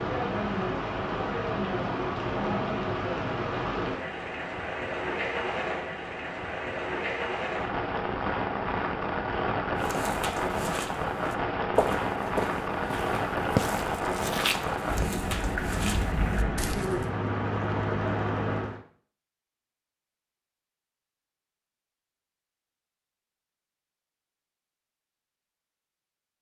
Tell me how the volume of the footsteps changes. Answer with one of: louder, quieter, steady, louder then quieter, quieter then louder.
louder then quieter.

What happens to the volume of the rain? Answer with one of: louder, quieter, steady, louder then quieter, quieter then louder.
steady.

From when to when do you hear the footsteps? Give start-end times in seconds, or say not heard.
9.8-17.1.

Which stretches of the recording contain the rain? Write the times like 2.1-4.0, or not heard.
0.0-18.8.